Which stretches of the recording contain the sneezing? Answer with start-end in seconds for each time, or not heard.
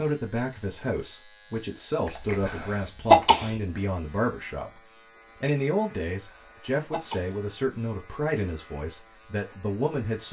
2.0-3.5, 6.2-7.4.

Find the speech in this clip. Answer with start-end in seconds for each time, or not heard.
0.0-4.8, 5.4-10.2.